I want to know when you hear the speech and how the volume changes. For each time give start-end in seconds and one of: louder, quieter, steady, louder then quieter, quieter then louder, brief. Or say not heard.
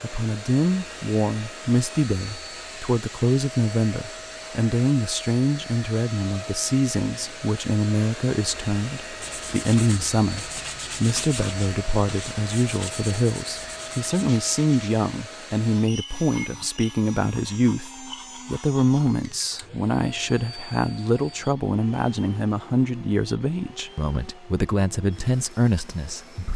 0.0-26.5 steady.